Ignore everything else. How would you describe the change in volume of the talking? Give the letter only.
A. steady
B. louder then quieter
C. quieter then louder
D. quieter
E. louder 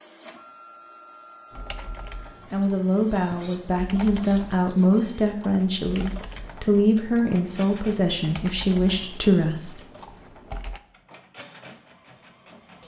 A.